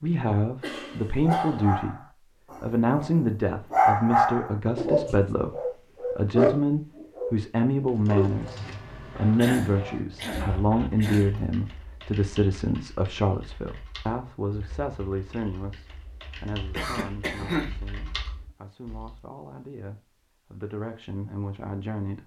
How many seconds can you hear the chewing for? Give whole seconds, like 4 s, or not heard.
not heard.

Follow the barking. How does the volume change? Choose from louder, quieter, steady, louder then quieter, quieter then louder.
louder then quieter.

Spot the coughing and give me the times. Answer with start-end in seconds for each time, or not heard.
0.6-1.8, 9.3-11.3, 16.8-17.8.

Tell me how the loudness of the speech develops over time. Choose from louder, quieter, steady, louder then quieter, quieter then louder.
quieter.